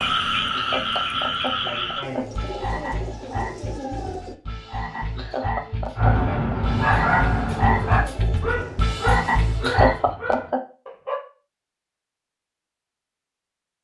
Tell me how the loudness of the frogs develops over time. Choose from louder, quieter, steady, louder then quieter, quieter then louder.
quieter then louder.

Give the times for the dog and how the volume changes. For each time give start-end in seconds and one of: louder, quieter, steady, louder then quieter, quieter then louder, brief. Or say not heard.
6.0-11.2 quieter.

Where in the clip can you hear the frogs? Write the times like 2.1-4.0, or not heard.
0.0-10.1.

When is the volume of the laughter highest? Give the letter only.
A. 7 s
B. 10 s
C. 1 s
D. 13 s
B.